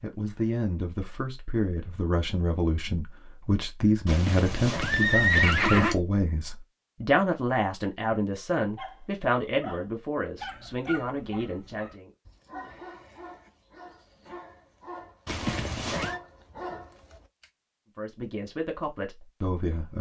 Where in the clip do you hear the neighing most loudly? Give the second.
5 s.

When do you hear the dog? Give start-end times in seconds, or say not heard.
8.8-17.5.